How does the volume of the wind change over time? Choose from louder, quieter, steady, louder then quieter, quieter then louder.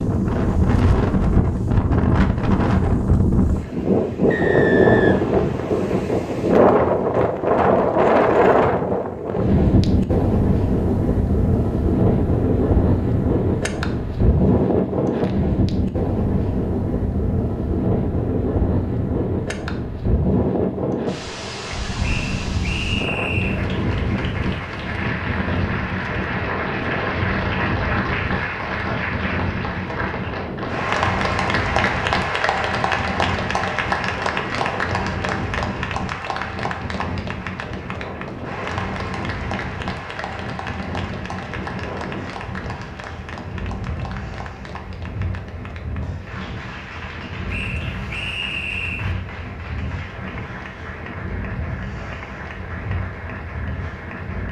quieter.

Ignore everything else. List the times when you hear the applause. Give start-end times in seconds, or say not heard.
23.4-54.4.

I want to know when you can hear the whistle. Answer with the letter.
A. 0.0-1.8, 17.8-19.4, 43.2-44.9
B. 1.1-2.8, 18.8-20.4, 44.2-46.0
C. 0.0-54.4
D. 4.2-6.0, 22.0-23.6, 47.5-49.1
D.